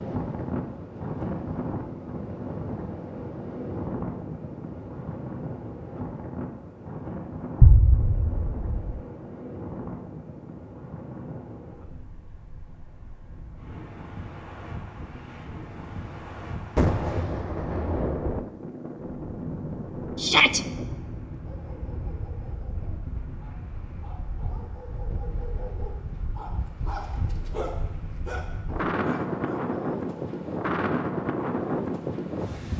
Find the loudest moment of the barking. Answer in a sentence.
The loudest moment of the barking is at 28 seconds.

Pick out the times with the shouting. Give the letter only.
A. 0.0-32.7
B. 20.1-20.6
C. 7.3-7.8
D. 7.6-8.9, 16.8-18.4
B.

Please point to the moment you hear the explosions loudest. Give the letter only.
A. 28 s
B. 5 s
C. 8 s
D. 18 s
C.